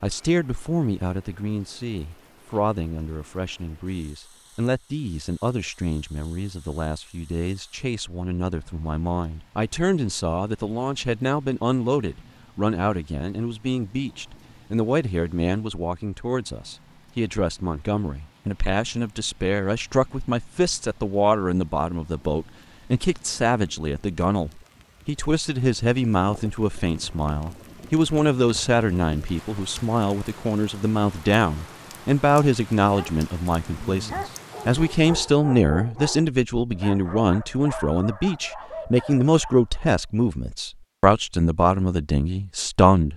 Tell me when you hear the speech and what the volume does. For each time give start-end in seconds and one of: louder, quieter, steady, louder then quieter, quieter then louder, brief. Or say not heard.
0.0-43.1 louder.